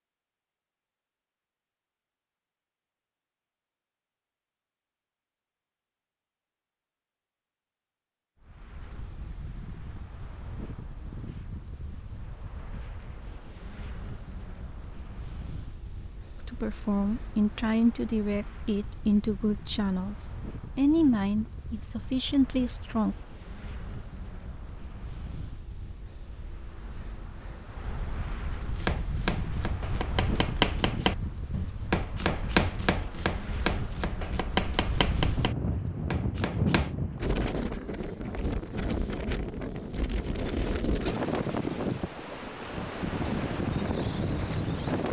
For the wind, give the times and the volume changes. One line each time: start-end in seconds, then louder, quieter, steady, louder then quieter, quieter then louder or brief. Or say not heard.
8.4-45.0 louder.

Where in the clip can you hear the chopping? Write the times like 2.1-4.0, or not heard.
28.8-37.0.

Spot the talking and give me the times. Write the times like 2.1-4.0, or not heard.
16.4-23.1.